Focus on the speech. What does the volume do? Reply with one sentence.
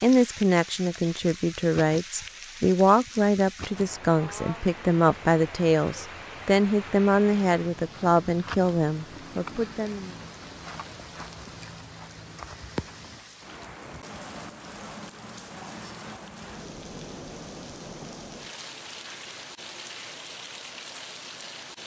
The volume of the speech stays about the same.